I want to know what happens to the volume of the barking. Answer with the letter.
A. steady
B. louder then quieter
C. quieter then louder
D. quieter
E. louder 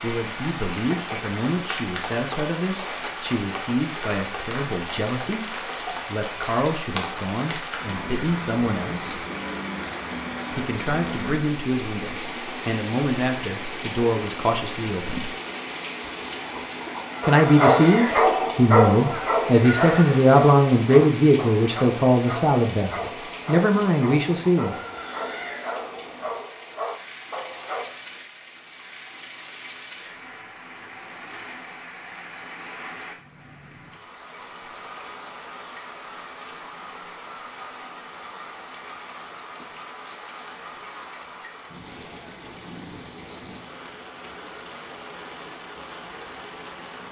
D.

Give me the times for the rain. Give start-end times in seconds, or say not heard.
0.0-47.0.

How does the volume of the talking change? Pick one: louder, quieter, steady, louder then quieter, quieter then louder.
louder.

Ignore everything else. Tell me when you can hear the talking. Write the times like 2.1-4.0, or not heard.
0.0-9.2, 10.5-15.3, 17.2-24.8.